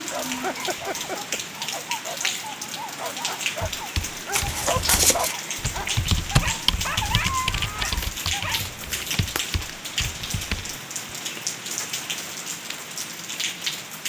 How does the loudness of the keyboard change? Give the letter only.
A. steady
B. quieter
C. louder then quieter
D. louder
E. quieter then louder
C.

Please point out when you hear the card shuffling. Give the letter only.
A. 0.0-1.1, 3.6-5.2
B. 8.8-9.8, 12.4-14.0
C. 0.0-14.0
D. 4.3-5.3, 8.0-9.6
D.